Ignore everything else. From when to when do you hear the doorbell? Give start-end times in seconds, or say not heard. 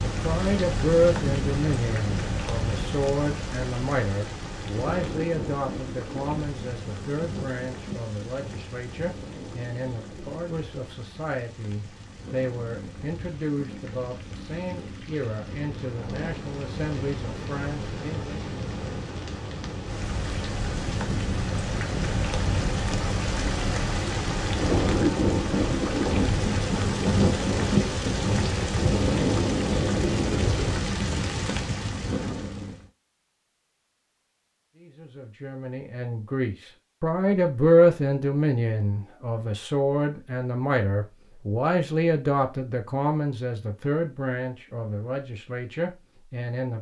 not heard.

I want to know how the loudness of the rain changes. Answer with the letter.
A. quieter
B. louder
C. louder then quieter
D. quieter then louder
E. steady
D.